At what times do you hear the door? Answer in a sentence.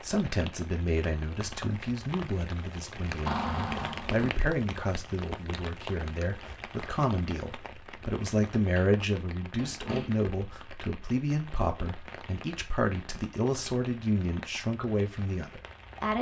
The door can be heard from 3.2 to 4.3 s and from 8.8 to 10.3 s.